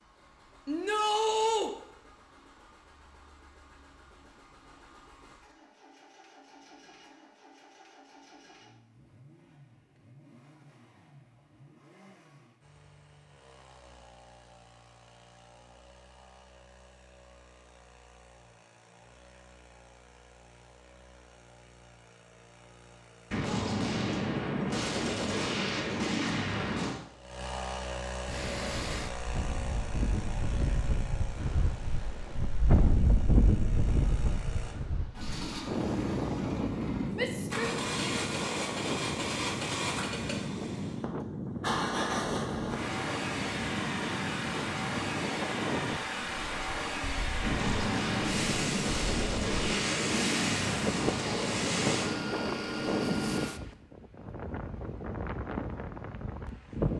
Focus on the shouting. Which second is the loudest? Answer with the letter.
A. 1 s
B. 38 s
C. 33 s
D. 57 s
A.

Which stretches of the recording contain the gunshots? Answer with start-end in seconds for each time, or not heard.
23.3-27.0, 47.4-52.2.